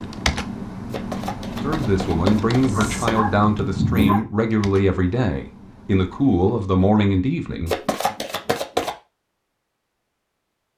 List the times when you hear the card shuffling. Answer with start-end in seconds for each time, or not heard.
0.9-3.2, 7.7-8.9.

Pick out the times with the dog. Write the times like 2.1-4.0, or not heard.
2.8-4.2.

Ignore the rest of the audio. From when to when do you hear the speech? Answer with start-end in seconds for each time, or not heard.
1.6-8.2.